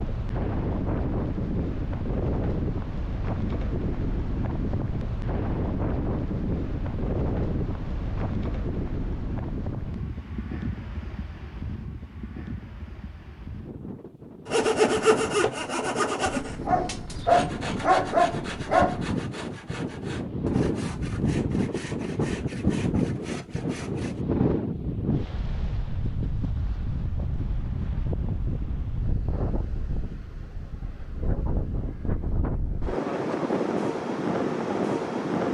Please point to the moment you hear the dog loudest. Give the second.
18 s.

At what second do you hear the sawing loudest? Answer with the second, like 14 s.
15 s.